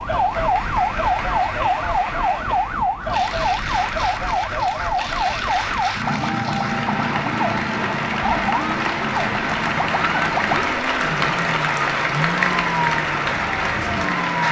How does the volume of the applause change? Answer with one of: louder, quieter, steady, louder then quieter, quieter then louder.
louder.